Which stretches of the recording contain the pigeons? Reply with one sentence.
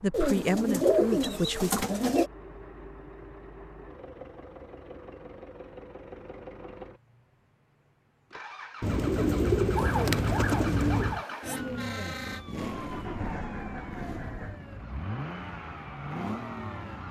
You can hear the pigeons from 0.1 to 2.3 s and from 8.8 to 11.2 s.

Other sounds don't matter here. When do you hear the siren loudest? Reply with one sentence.
The volume of the siren peaks at 10 seconds.